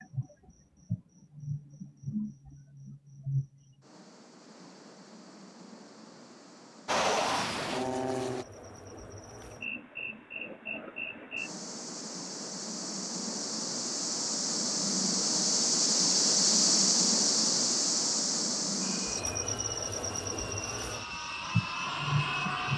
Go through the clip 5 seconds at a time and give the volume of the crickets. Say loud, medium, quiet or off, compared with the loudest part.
quiet, quiet, medium, loud, medium.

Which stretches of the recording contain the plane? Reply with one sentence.
The plane can be heard from 6.8 to 8.4 s and from 18.8 to 22.7 s.